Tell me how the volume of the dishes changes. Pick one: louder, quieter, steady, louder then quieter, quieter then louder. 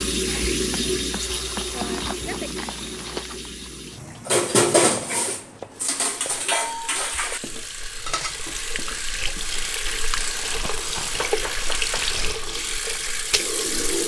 quieter.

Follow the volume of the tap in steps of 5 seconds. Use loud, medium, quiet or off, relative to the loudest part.
loud, medium, loud.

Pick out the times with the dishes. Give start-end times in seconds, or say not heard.
4.2-9.6.